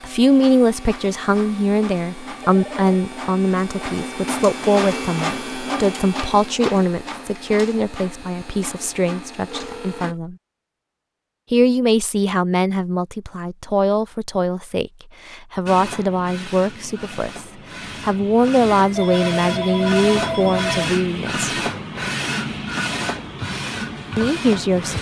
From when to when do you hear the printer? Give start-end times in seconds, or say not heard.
0.0-10.2, 15.7-24.9.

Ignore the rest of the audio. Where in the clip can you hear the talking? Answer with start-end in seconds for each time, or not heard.
0.0-10.3, 11.5-21.5, 24.1-24.9.